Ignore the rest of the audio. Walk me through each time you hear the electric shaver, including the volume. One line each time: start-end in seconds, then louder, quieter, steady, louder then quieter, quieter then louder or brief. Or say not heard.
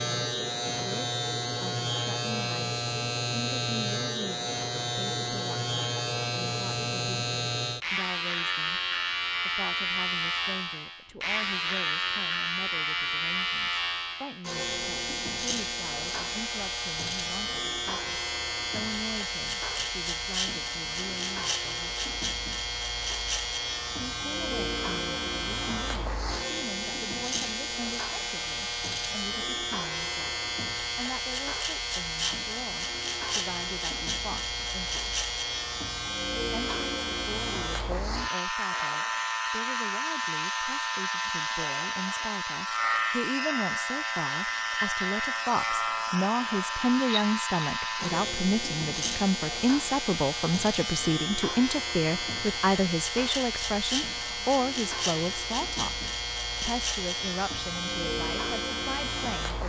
0.0-59.6 steady.